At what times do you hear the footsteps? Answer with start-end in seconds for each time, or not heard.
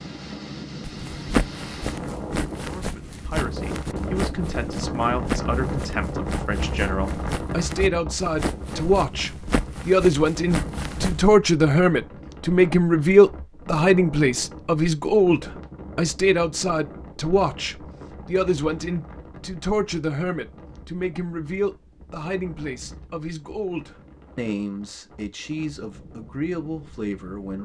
0.8-11.3.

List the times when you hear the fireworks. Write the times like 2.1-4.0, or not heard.
not heard.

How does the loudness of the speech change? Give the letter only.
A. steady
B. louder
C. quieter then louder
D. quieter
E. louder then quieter
E.